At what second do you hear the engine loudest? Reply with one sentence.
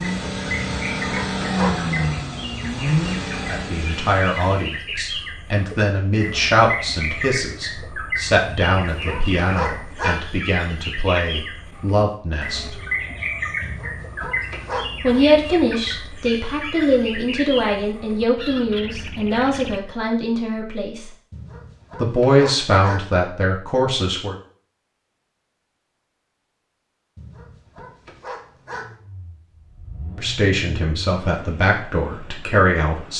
The volume of the engine peaks at 2 seconds.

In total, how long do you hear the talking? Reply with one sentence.
You can hear the talking for 21 seconds altogether.